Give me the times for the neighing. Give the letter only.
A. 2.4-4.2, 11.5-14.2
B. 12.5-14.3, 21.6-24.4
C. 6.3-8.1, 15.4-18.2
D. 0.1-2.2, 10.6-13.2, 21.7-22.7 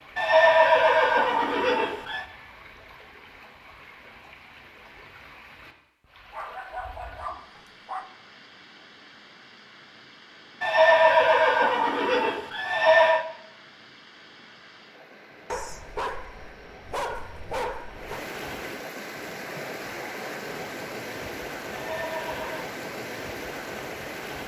D.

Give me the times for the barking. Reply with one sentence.
The barking can be heard from 6.3 to 8.1 s and from 15.4 to 18.2 s.